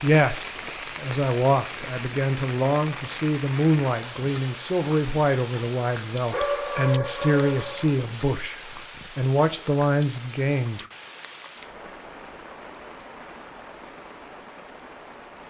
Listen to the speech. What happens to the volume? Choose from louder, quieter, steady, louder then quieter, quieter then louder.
steady.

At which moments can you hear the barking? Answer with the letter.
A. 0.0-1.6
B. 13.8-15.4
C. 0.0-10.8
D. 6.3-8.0
D.